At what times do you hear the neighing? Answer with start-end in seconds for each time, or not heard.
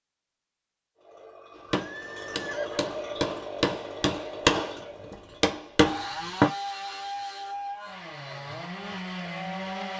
1.7-3.0.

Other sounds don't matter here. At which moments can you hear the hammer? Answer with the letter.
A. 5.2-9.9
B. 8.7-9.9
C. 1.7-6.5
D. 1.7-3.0
C.